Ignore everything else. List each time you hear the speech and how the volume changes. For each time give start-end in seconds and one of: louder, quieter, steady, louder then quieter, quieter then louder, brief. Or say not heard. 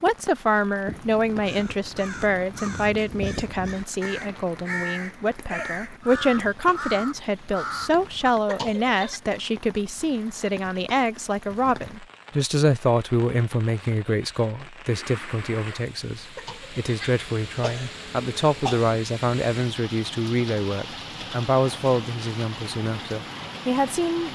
0.0-24.3 steady.